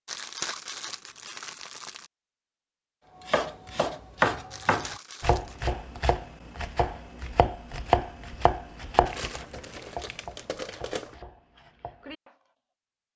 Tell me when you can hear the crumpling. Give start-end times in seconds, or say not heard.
0.1-2.1, 4.5-5.7, 9.1-11.2.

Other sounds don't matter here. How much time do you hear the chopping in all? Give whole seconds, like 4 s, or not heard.
9 s.